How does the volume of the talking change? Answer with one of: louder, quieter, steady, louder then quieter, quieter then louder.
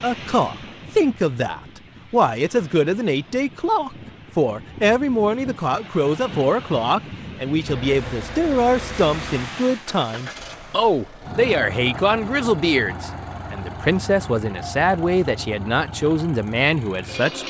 steady.